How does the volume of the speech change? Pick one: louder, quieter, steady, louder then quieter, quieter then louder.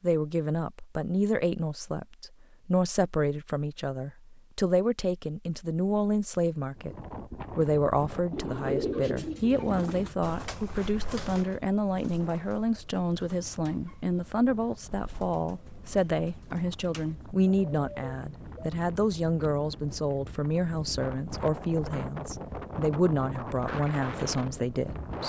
steady.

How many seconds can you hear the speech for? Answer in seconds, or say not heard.
25 s.